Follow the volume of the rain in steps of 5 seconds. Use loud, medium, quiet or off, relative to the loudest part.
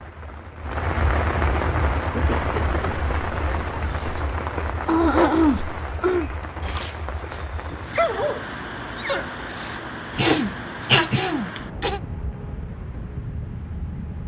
loud, medium, medium.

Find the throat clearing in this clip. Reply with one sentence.
The throat clearing can be heard from 2.1 to 3.0 s, from 4.8 to 6.3 s and from 10.2 to 12.0 s.